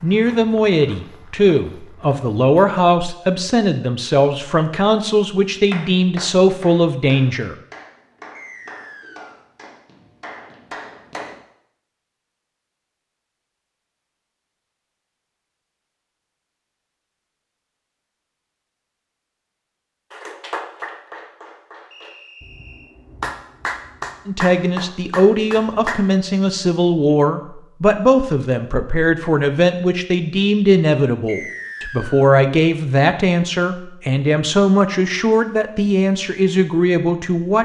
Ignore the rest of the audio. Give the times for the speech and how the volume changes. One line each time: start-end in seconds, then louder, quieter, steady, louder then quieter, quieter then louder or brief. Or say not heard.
0.0-7.5 steady
24.2-37.6 steady.